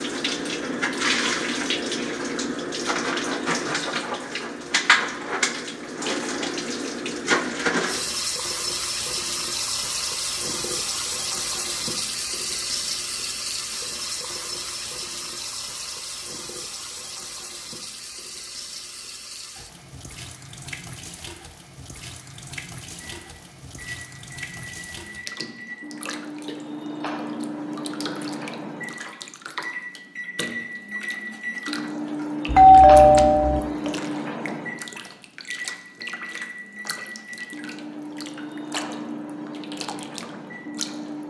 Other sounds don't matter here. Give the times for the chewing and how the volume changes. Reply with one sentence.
The chewing can't be heard in this clip.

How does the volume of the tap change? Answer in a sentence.
The loudness of the tap goes down.